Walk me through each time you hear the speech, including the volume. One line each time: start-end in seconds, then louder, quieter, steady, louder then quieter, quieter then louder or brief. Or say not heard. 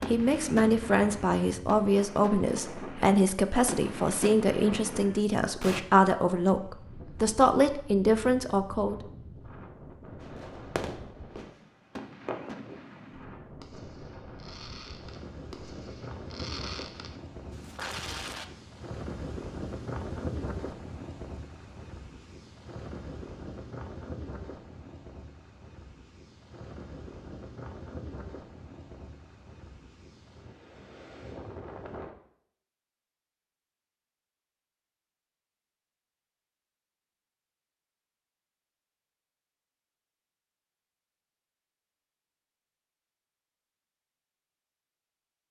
0.1-8.9 steady.